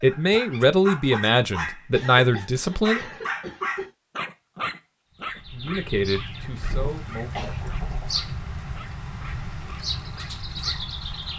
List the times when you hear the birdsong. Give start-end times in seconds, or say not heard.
5.1-11.3.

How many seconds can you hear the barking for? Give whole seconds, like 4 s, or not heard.
11 s.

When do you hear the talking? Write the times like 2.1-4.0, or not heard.
0.0-3.0, 5.5-7.8.